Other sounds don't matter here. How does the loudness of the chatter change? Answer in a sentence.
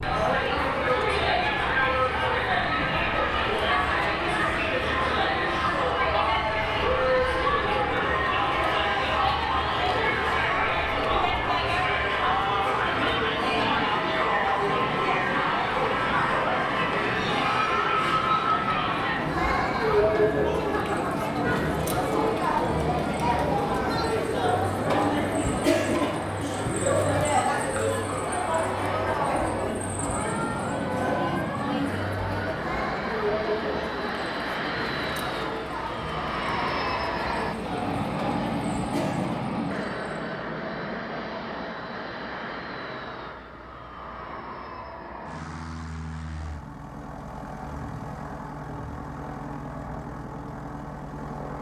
The volume of the chatter goes down.